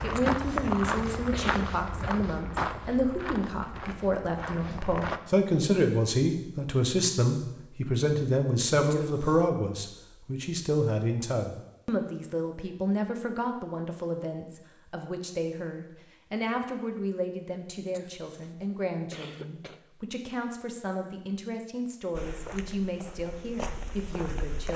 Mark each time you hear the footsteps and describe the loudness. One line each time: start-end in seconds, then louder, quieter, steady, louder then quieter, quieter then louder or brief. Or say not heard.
0.0-5.2 quieter
22.1-24.7 brief.